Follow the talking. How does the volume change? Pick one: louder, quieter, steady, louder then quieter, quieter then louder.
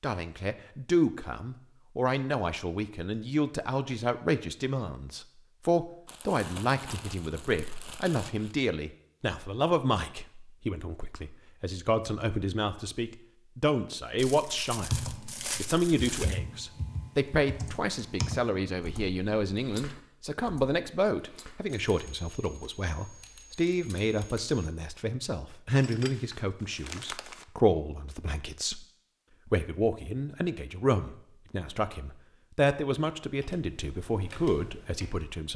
steady.